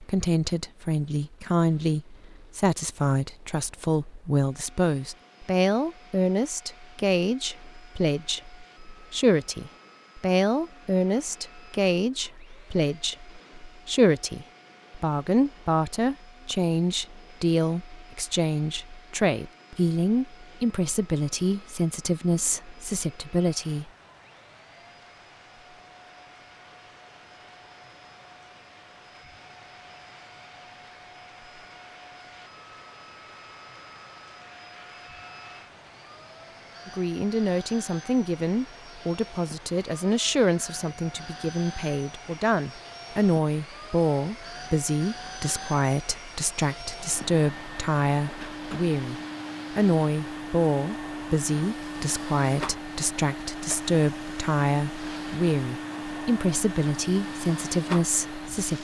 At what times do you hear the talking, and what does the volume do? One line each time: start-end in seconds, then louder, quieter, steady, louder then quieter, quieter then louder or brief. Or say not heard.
0.0-23.9 steady
36.9-49.1 steady
49.8-58.7 steady.